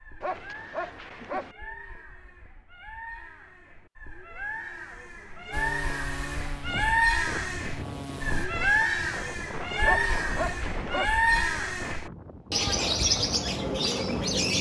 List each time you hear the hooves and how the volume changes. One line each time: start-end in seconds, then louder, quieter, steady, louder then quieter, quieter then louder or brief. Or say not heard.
not heard.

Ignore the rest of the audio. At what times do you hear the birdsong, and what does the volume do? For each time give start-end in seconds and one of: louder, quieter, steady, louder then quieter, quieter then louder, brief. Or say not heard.
0.0-14.5 louder.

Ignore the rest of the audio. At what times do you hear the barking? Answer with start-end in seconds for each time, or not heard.
0.2-1.6, 9.8-11.2.